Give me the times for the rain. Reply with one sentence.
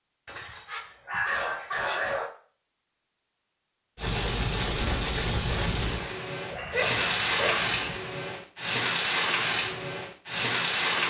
You can hear the rain from 4.0 to 11.0 s.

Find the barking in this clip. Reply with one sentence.
You can hear the barking from 0.2 to 2.3 s and from 6.5 to 8.0 s.